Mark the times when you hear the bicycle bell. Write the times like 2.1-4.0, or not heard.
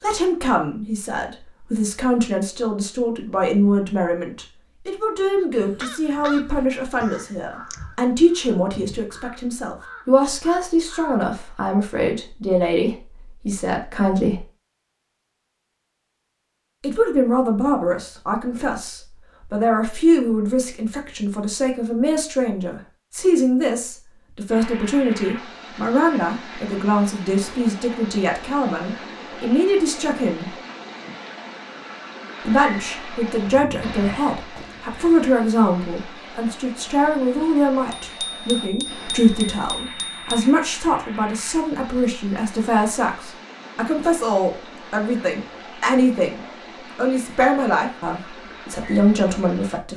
37.9-40.5.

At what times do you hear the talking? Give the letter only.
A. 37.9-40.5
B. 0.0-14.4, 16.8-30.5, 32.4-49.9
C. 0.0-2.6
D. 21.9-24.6
B.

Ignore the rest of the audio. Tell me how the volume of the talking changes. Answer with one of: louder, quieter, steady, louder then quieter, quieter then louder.
steady.